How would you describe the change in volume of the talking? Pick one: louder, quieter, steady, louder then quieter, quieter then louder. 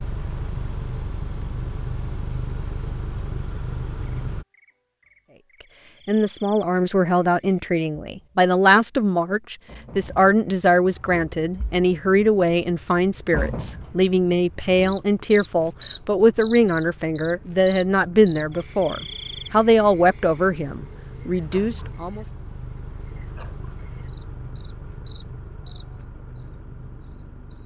steady.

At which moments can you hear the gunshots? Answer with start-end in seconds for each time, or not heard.
not heard.